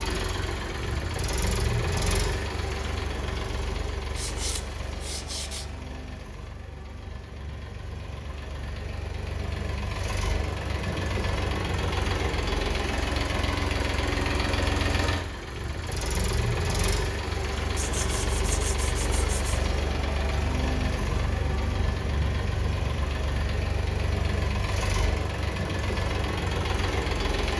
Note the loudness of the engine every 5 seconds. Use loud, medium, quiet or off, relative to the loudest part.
loud, medium, loud, loud, loud, loud.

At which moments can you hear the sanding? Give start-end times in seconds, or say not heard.
4.2-5.7, 17.8-19.6.